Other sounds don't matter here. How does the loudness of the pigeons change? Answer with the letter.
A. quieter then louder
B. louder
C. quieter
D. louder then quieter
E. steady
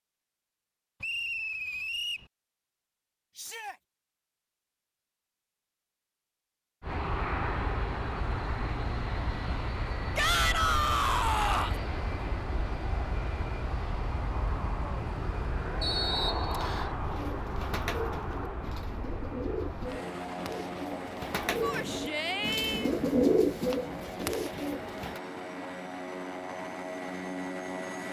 B.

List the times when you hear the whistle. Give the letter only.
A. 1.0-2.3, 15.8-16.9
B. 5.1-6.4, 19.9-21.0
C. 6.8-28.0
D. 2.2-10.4
A.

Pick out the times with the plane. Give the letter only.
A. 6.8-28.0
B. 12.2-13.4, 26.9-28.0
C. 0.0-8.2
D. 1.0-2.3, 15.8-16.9
A.